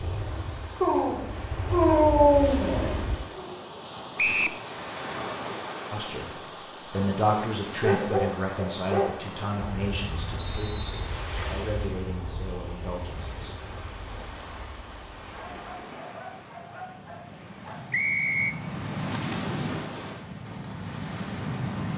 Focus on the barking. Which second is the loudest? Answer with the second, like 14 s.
2 s.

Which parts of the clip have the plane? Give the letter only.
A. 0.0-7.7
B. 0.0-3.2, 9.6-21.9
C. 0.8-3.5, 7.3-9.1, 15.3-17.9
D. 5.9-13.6
B.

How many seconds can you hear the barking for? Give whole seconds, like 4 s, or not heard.
7 s.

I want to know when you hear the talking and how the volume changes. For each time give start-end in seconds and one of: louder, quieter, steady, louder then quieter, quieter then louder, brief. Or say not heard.
5.9-13.6 quieter.